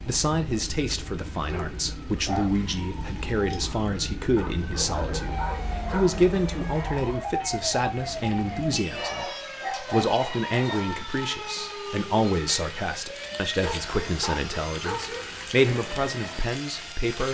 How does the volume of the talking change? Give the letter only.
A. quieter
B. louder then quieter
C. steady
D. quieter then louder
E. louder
C.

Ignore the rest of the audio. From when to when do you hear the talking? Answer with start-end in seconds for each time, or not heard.
0.0-17.3.